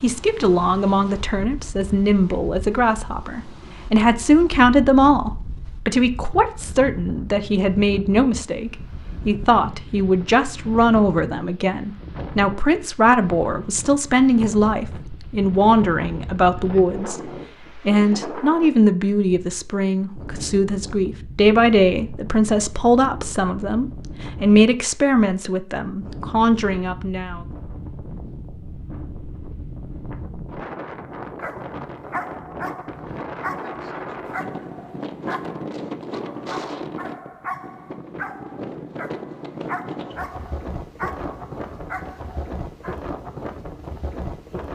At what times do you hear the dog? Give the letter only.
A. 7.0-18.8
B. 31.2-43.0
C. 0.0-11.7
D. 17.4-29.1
B.